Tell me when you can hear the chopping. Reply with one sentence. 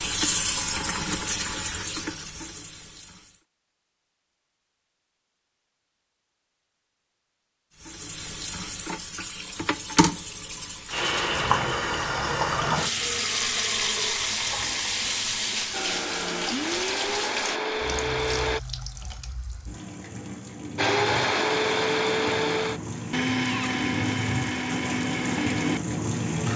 You can't hear the chopping here.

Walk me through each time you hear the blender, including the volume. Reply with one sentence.
The blender can be heard briefly from 15.7 to 18.6 s; and from 20.8 to 26.5 s, getting quieter.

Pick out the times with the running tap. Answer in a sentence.
You can hear the running tap from 0.0 to 3.4 s and from 7.8 to 26.5 s.